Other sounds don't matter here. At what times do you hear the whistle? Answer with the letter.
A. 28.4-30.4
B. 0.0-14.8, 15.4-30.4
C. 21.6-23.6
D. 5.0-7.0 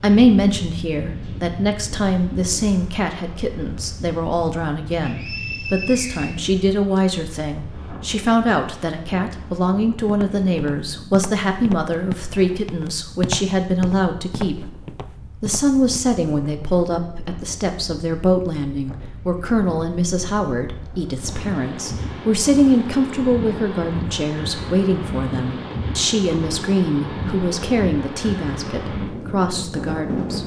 D.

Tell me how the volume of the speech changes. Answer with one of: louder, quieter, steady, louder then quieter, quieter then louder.
steady.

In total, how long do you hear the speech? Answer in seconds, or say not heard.
30 s.